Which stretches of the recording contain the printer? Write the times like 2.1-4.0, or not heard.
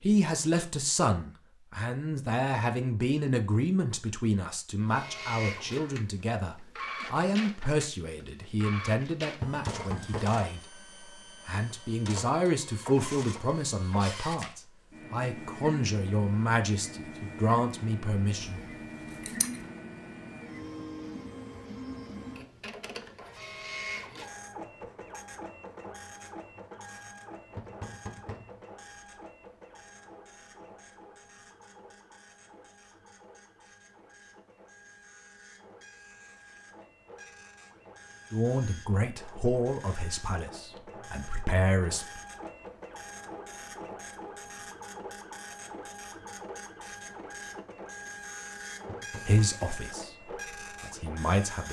4.8-51.6.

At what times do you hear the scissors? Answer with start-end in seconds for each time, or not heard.
18.4-19.6.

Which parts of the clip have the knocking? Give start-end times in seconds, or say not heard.
9.4-10.4, 27.6-28.6, 48.9-50.0.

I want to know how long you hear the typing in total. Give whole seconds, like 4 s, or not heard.
not heard.